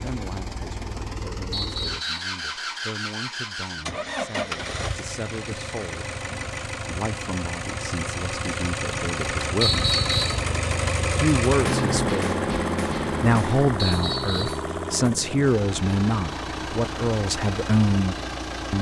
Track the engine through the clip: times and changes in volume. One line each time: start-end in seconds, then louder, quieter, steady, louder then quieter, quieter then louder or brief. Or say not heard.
0.0-18.7 louder then quieter.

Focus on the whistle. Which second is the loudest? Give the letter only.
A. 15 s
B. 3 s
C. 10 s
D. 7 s
C.